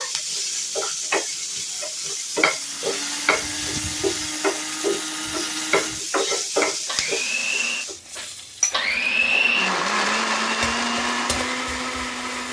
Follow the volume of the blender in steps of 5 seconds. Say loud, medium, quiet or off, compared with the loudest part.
medium, loud, loud.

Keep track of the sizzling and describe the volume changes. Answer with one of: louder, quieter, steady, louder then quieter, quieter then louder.
quieter.